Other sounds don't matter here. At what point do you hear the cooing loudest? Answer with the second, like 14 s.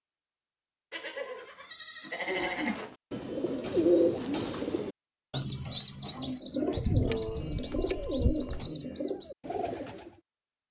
4 s.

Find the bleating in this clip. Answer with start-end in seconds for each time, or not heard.
0.9-2.8, 6.8-8.7.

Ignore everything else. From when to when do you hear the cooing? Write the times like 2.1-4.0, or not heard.
2.2-10.2.